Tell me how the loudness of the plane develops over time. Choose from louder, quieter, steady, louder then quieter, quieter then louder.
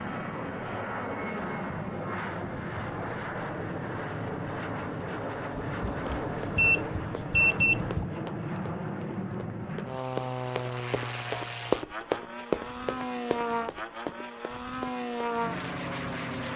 steady.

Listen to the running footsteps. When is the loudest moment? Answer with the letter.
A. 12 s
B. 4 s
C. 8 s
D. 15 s
A.